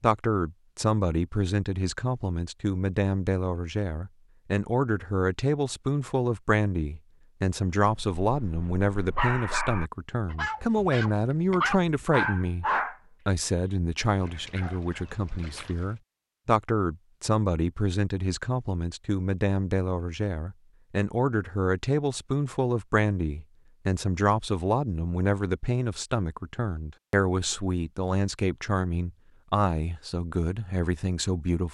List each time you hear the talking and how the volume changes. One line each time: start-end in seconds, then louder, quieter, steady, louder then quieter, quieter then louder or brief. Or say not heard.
0.0-12.7 steady
13.2-31.6 steady.